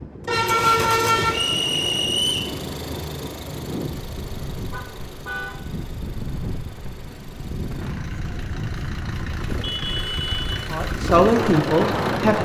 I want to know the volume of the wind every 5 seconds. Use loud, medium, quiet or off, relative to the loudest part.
medium, medium, loud.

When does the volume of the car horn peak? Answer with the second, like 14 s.
1 s.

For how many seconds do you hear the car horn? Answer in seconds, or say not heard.
3 s.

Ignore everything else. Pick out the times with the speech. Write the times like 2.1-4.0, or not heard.
10.7-12.4.